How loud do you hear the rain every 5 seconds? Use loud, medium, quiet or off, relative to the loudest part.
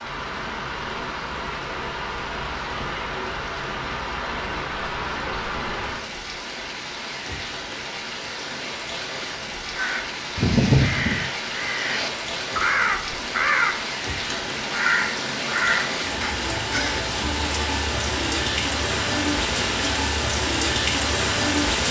medium, medium, medium, loud, loud.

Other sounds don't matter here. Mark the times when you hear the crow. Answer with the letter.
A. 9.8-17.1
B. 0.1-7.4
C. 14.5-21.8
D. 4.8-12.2
A.